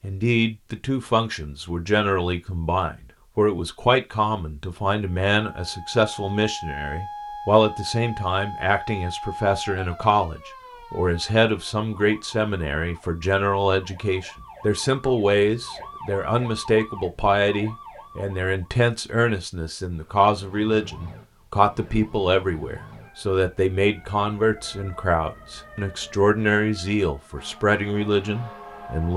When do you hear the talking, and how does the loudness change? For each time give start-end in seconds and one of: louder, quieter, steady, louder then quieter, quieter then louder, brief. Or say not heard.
0.0-29.1 steady.